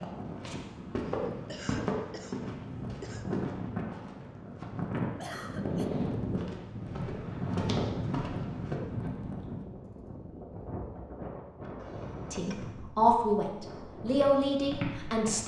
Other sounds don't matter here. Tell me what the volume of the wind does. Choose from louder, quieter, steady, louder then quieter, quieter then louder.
louder then quieter.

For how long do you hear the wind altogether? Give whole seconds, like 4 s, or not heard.
15 s.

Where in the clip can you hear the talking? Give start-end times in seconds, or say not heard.
12.3-15.4.